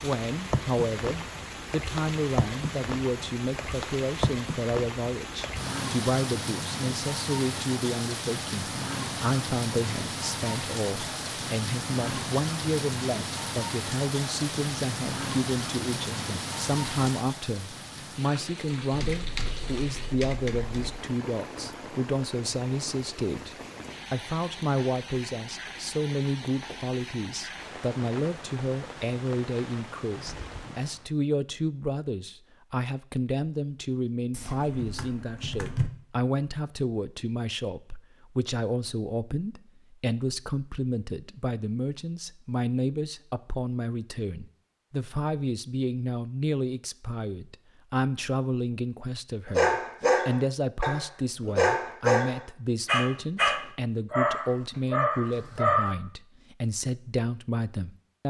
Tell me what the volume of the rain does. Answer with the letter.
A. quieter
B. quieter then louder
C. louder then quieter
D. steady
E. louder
A.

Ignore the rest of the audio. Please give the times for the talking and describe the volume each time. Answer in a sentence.
You can hear the talking from 0.0 to 58.2 s, at a steady volume.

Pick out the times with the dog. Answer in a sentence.
The dog can be heard from 49.5 to 56.0 s.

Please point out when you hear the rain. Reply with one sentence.
The rain can be heard from 0.0 to 31.1 s.